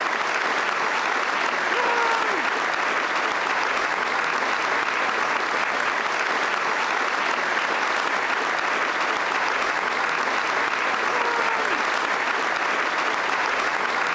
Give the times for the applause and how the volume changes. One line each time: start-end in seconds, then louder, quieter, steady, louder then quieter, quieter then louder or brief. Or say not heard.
0.0-14.1 steady.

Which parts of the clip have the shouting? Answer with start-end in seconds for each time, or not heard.
1.7-2.5, 11.1-11.7.